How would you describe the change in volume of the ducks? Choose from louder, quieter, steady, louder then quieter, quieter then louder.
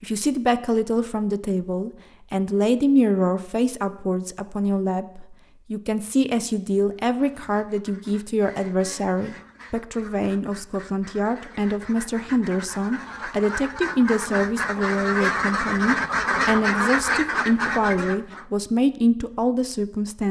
louder.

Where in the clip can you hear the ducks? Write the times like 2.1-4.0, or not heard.
7.0-18.4.